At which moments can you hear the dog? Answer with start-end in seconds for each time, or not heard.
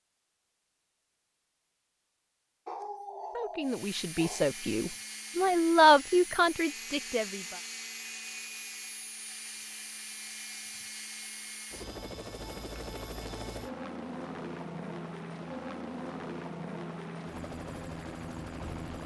2.6-4.5.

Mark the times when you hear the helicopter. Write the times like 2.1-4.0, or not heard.
3.6-19.0.